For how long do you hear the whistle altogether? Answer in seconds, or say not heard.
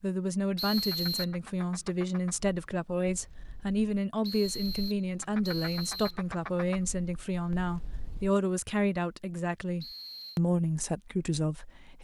3 s.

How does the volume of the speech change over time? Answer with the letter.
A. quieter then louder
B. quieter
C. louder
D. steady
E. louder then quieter
D.